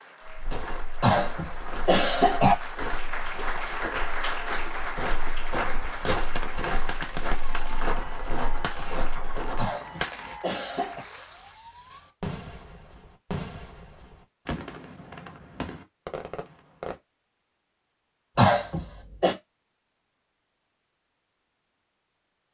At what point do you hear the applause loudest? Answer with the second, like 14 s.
4 s.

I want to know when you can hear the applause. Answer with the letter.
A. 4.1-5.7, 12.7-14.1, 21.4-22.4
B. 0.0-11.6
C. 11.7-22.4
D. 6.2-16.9
B.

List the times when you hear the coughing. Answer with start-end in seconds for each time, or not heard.
1.0-2.5, 9.6-11.0, 18.4-19.4.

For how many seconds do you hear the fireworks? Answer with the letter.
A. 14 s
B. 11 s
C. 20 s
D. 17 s
B.